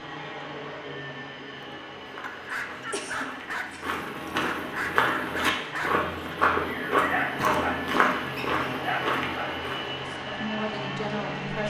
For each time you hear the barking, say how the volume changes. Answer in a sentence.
You can hear the barking from 2.2 to 6.3 s, getting quieter then louder; briefly from 7.0 to 7.9 s; and briefly from 8.8 to 9.7 s.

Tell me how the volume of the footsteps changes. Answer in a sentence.
The loudness of the footsteps goes up.